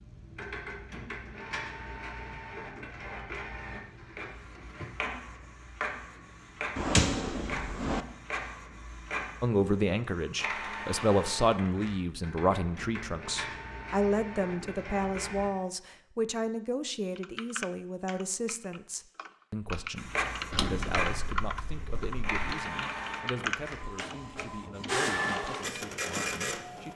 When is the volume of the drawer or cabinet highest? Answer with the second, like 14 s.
7 s.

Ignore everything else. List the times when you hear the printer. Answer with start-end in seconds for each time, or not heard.
0.0-15.5, 19.9-26.9.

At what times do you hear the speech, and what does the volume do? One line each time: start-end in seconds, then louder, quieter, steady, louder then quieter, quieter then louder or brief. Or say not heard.
9.4-26.9 quieter.